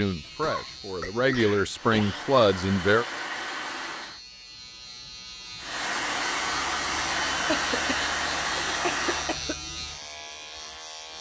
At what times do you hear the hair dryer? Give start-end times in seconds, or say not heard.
1.7-4.2, 5.6-9.4.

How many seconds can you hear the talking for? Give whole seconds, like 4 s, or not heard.
3 s.